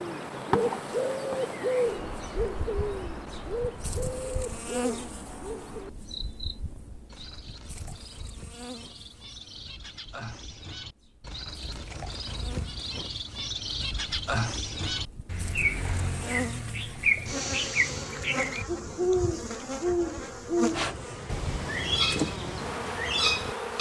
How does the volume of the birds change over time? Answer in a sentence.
The loudness of the birds goes down, then up.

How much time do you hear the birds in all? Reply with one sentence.
You can hear the birds for 24 seconds altogether.